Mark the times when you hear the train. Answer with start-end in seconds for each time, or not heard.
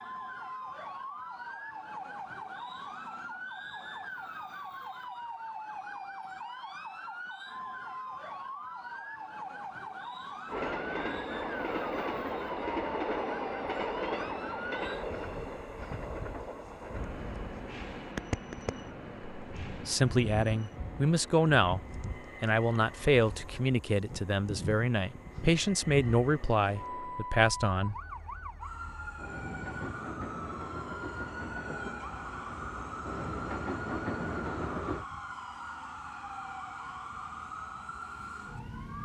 10.4-35.0.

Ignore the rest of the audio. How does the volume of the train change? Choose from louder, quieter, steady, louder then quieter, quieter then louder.
quieter then louder.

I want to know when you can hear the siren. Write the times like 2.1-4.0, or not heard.
0.0-38.9.